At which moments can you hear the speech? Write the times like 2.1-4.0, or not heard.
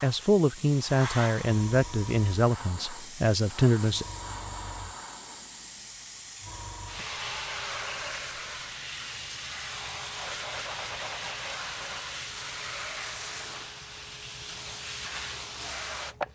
0.0-4.0.